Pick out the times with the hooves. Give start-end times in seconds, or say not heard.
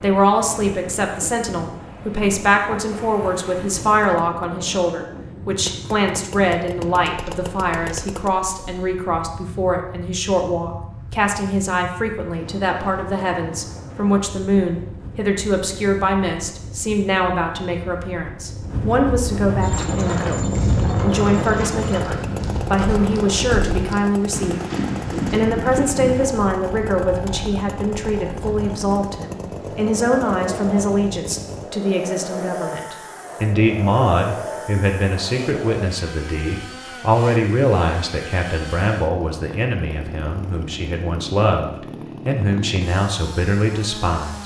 19.6-26.3.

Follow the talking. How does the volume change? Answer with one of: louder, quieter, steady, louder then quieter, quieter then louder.
steady.